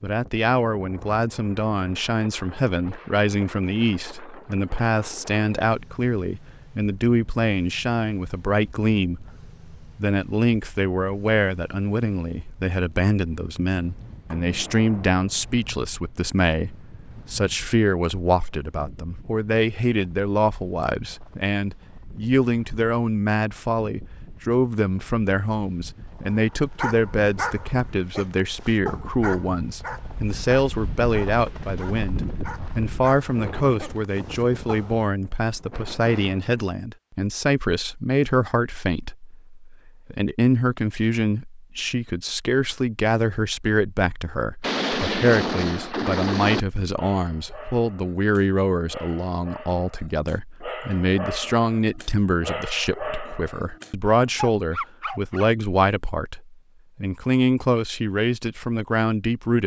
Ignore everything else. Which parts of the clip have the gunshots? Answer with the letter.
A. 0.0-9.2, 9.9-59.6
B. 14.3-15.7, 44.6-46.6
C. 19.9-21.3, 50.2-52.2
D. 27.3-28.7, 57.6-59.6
B.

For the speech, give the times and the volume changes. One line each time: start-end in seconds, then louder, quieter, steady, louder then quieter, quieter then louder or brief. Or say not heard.
0.0-9.2 steady
9.9-59.6 steady.